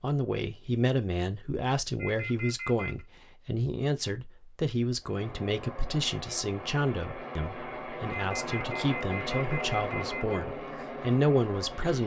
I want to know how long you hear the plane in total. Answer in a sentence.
You can hear the plane for 7 seconds altogether.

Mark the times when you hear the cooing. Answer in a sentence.
The cooing can't be heard in this clip.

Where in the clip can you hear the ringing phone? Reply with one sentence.
You can hear the ringing phone from 1.9 to 3.0 s and from 8.1 to 10.4 s.